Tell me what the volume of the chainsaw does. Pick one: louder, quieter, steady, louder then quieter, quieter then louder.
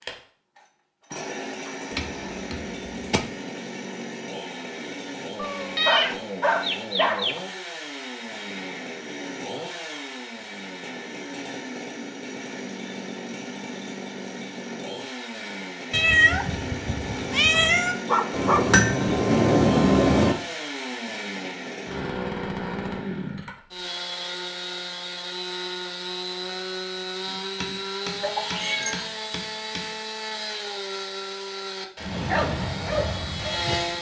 steady.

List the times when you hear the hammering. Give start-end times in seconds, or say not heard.
1.9-3.2, 18.3-20.4, 27.2-29.9.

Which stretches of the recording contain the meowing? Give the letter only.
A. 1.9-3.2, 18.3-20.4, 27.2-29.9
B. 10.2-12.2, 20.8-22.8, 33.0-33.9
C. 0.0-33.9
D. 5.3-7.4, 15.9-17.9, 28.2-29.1
D.